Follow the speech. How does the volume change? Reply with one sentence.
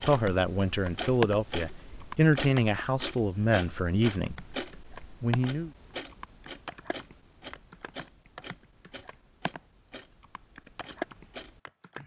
The loudness of the speech goes down.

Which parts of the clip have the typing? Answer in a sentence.
You can hear the typing from 0.1 to 1.4 s, from 2.0 to 2.8 s, from 4.2 to 5.5 s, from 6.1 to 9.6 s and from 10.2 to 12.0 s.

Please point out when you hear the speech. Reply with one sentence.
The speech can be heard from 0.0 to 5.7 s.